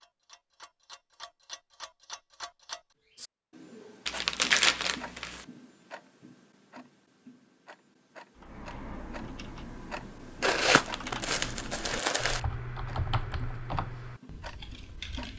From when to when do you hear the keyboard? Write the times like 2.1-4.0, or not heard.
8.3-15.3.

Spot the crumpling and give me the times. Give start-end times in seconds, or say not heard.
4.0-5.5, 10.4-12.4.